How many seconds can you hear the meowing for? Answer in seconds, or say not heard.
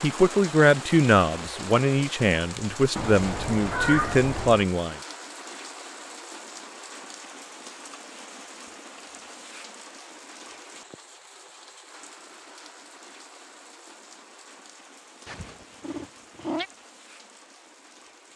3 s.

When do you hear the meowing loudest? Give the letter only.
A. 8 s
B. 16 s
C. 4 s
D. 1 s
C.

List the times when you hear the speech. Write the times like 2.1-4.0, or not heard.
0.0-5.0.